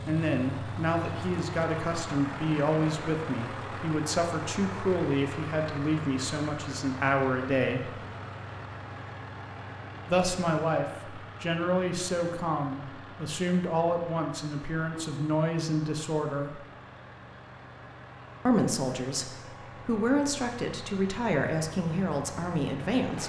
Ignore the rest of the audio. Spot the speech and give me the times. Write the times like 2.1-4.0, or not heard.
0.0-8.0, 10.1-16.6, 18.4-23.2.